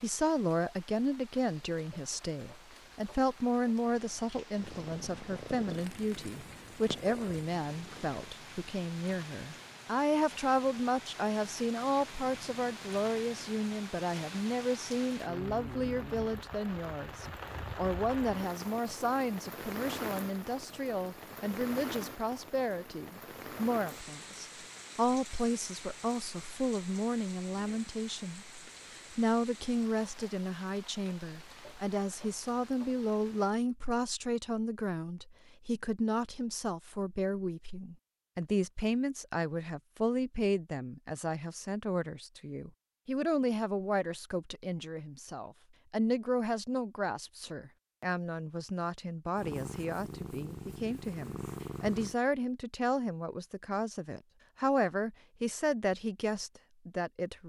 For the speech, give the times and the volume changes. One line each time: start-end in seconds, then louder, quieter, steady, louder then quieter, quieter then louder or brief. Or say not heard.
0.0-57.4 steady.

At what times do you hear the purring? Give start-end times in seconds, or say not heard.
4.5-8.3, 49.4-52.1.